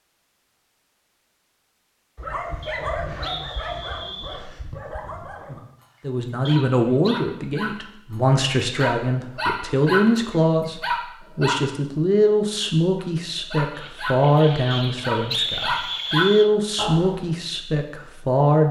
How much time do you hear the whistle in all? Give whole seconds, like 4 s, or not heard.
4 s.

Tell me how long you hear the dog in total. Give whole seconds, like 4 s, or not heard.
14 s.